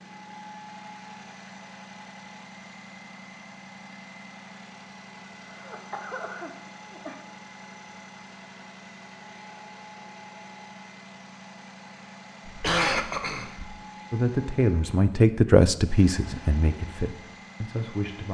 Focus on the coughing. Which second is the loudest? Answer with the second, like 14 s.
13 s.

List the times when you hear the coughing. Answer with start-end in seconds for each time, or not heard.
5.5-7.2, 12.4-13.8.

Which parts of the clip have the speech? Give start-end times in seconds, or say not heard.
14.1-18.2.